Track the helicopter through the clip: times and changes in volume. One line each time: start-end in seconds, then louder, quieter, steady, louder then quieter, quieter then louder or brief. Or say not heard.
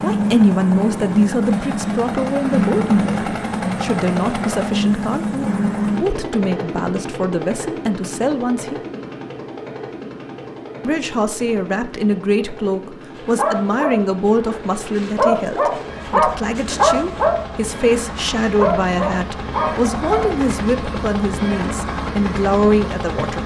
0.0-23.4 quieter then louder.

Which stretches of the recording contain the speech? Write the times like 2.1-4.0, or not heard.
0.0-8.8, 10.8-23.4.